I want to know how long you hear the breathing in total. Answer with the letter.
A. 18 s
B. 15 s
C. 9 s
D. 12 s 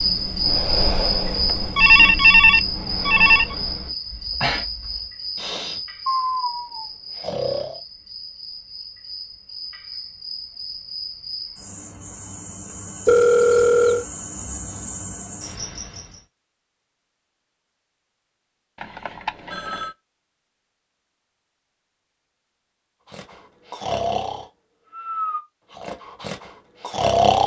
D.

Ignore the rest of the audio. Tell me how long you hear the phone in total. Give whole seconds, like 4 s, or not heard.
4 s.